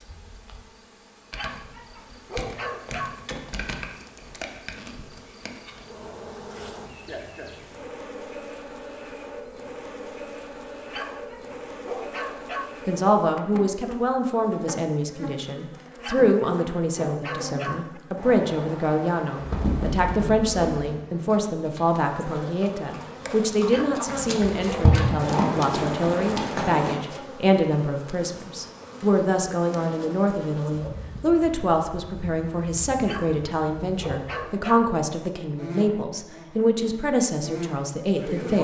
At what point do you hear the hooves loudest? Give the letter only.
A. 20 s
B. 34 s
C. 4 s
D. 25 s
D.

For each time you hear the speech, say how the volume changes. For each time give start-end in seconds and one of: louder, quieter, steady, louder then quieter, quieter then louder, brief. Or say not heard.
12.8-38.5 steady.